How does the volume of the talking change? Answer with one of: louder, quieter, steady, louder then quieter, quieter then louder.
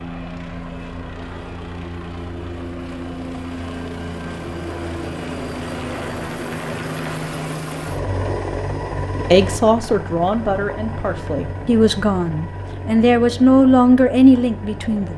quieter then louder.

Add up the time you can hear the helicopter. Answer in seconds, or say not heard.
15 s.